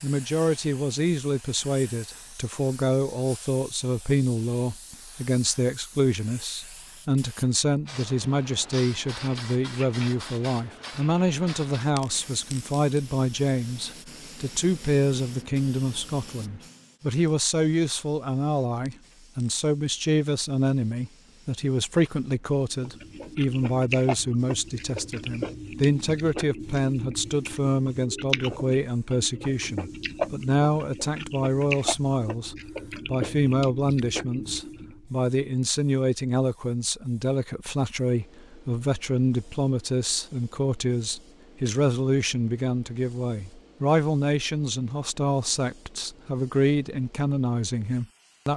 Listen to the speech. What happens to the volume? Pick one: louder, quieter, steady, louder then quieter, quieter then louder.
steady.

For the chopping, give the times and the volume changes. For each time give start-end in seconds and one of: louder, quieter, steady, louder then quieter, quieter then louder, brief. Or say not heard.
not heard.